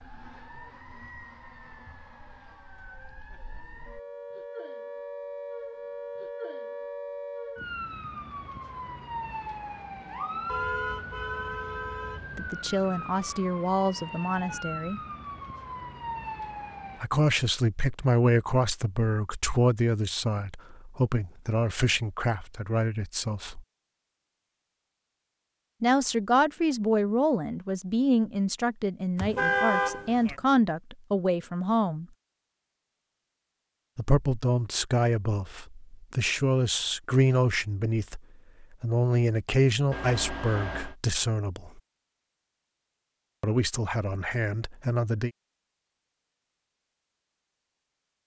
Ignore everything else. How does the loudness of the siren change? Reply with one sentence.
The loudness of the siren goes up.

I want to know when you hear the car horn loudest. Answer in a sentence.
The volume of the car horn peaks at 30 seconds.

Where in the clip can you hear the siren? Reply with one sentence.
The siren can be heard from 0.0 to 17.0 s.